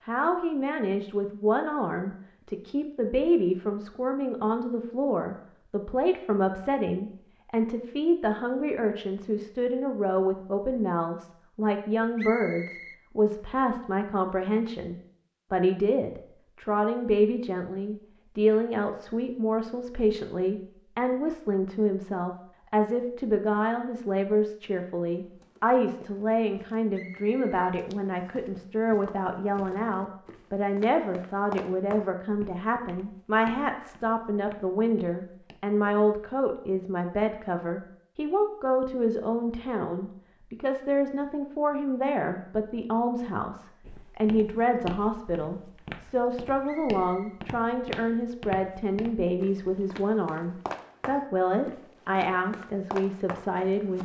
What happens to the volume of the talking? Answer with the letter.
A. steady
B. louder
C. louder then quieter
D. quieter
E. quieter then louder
A.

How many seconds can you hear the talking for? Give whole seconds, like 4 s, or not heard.
54 s.